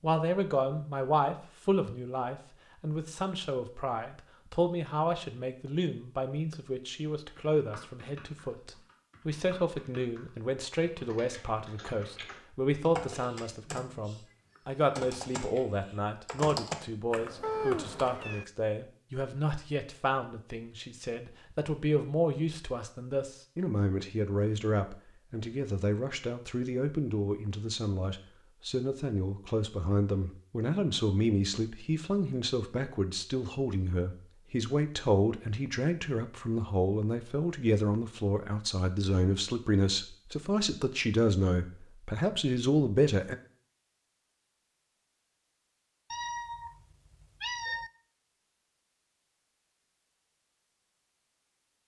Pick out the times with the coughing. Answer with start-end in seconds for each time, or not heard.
not heard.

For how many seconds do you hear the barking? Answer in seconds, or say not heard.
not heard.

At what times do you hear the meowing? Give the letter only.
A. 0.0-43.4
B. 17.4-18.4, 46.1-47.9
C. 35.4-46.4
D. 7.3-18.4
B.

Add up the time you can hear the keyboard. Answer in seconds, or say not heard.
11 s.